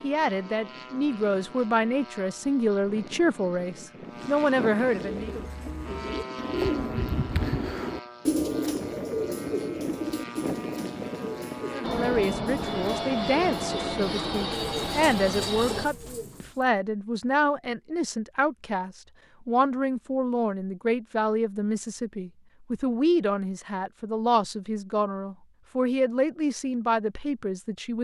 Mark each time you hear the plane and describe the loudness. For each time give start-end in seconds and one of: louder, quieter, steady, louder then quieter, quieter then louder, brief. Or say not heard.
0.0-15.9 louder.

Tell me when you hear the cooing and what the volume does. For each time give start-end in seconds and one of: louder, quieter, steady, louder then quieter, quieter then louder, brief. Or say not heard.
5.0-16.6 quieter.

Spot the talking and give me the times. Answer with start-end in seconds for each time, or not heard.
0.0-5.3, 11.7-27.9.